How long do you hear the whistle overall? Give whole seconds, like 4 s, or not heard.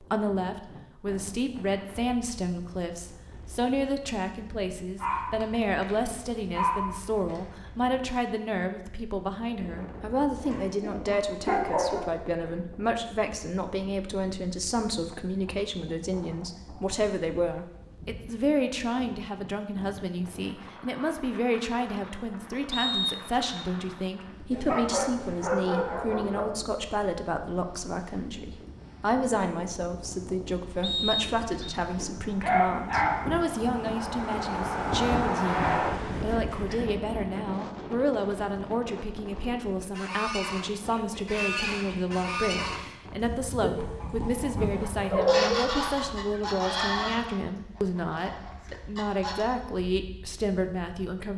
2 s.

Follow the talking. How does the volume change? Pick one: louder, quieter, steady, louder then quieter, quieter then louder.
steady.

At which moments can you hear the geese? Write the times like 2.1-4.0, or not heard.
39.9-49.5.